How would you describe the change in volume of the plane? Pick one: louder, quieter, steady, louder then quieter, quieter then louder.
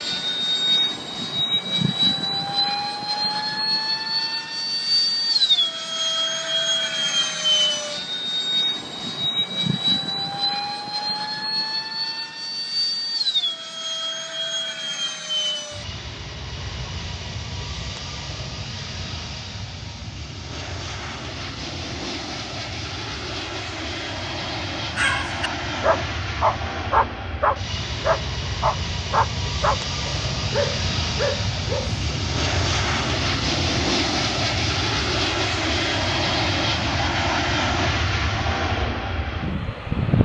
quieter then louder.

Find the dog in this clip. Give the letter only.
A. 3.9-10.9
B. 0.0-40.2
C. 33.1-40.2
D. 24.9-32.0
D.